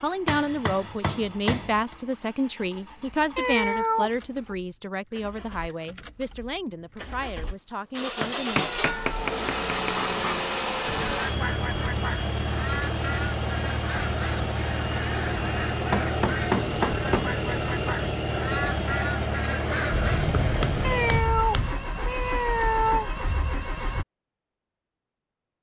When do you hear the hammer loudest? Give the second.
17 s.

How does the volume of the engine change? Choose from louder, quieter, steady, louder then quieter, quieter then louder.
louder.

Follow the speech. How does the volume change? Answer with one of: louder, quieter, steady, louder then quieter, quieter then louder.
quieter.